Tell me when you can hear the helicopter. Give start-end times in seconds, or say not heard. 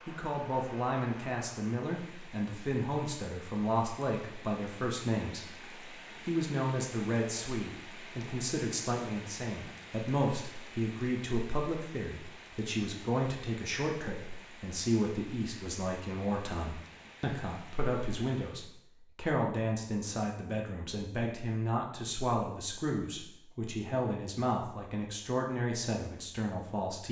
not heard.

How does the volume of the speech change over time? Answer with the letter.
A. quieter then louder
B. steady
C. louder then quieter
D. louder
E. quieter
B.